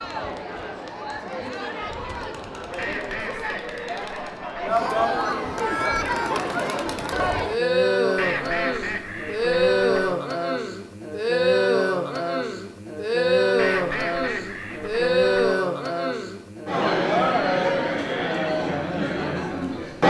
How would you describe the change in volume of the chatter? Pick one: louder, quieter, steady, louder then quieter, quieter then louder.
louder.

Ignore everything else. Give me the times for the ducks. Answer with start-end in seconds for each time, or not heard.
2.8-4.8, 8.2-10.2, 13.6-15.6.